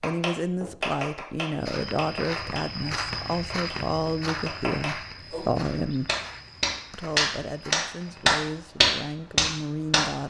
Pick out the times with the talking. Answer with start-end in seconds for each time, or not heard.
0.0-6.1, 6.9-10.2.